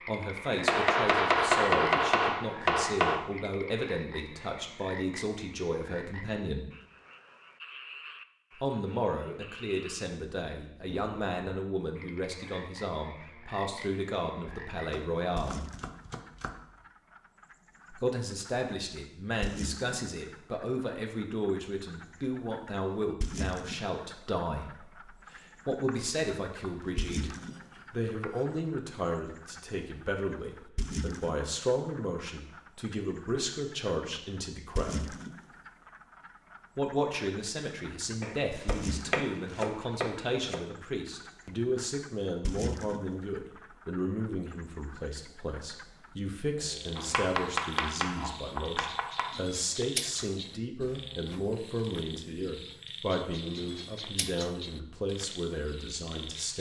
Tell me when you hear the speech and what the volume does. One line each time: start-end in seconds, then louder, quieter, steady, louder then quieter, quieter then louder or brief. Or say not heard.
0.1-6.7 steady
8.6-15.6 steady
17.9-35.1 steady
36.8-56.5 steady.